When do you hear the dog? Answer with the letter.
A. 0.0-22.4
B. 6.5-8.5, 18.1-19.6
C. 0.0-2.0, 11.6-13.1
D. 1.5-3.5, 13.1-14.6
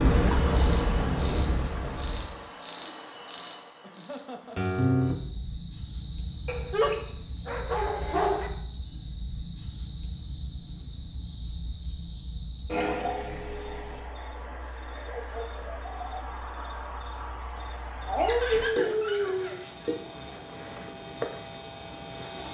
B.